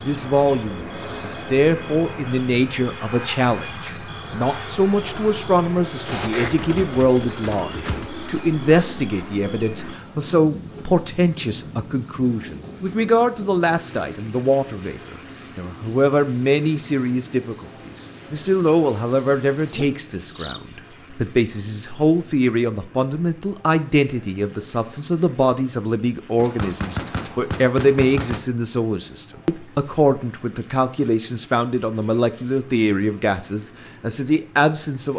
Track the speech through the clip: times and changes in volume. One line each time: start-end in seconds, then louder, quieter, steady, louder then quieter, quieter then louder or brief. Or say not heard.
0.0-35.1 steady.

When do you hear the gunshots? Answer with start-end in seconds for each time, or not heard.
6.0-8.1, 26.4-28.4.